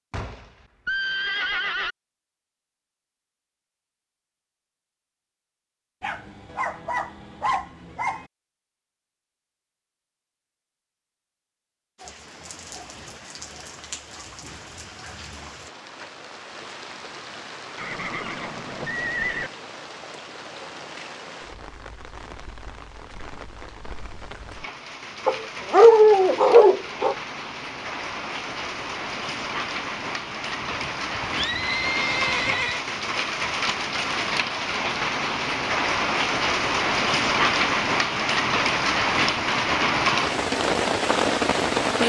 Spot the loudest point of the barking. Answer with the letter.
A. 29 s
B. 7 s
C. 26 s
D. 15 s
C.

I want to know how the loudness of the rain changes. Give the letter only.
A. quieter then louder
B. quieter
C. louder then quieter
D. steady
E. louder
E.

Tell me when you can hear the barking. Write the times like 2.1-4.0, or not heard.
6.0-8.2, 25.2-27.1.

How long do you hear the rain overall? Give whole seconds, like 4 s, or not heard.
30 s.